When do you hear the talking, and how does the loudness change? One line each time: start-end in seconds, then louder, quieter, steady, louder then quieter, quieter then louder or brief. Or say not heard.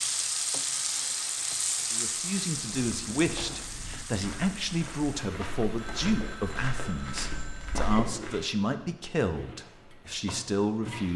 1.9-11.1 steady.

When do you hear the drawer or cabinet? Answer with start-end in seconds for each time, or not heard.
not heard.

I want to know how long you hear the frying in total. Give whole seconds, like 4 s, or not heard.
11 s.